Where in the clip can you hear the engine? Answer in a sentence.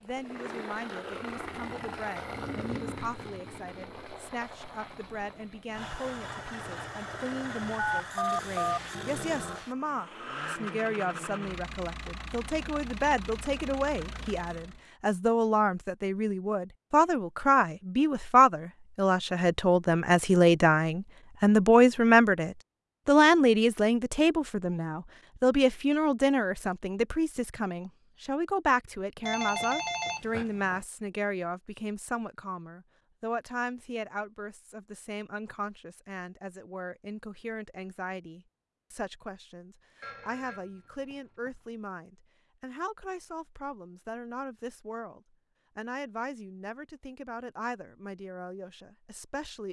You can hear the engine from 0.0 to 14.8 s.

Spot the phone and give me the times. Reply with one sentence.
You can hear the phone from 7.8 to 8.8 s, from 29.2 to 30.9 s and from 40.0 to 41.5 s.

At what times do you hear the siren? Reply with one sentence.
The siren can't be heard in this clip.